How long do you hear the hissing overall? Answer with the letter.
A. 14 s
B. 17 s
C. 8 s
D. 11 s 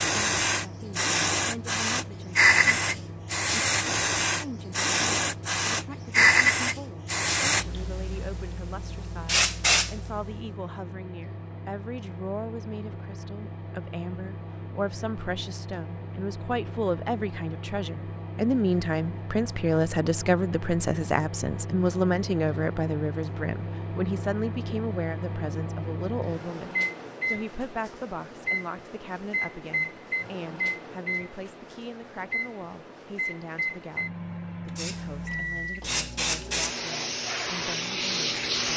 A.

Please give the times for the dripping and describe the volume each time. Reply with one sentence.
You can't hear the dripping here.